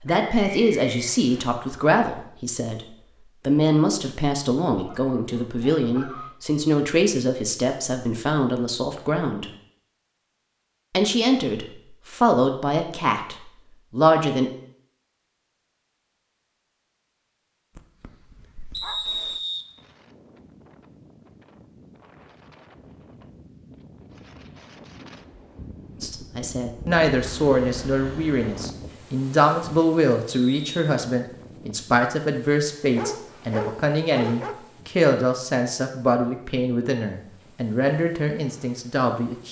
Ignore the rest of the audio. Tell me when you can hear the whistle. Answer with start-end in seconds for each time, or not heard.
0.1-1.5, 18.7-19.6, 30.3-30.8.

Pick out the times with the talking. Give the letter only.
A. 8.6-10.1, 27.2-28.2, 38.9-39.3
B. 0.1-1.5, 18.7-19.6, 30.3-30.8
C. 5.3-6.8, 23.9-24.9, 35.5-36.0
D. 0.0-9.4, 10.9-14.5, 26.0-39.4
D.